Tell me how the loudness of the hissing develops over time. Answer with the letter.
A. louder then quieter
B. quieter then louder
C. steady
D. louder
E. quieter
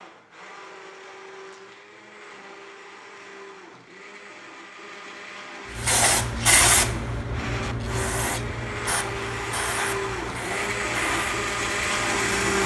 E.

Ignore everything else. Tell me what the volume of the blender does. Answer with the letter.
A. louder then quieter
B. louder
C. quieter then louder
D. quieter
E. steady
B.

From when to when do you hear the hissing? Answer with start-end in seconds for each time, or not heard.
5.8-12.6.